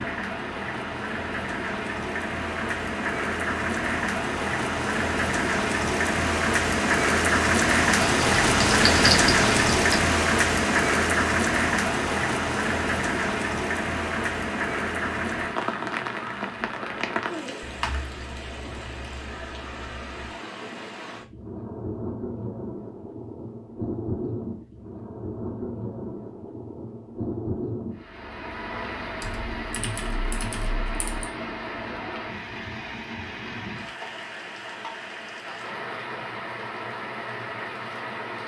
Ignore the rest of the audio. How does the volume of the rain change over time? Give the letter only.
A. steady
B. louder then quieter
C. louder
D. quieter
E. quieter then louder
D.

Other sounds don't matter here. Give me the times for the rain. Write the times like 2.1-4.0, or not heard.
0.0-38.4.